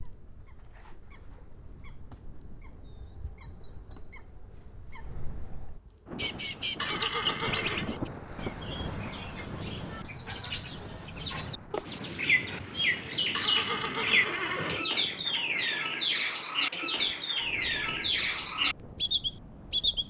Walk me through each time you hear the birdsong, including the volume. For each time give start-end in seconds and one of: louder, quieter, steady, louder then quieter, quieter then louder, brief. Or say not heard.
0.0-20.0 louder.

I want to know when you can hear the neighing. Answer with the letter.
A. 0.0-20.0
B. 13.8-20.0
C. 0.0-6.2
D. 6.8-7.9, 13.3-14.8
D.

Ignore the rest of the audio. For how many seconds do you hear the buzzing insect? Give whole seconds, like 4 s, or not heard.
6 s.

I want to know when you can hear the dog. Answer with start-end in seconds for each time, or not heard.
not heard.